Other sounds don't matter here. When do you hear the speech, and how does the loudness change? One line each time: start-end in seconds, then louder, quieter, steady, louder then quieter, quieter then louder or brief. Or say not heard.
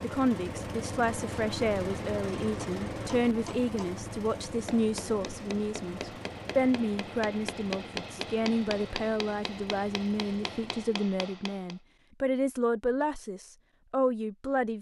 0.0-14.7 steady.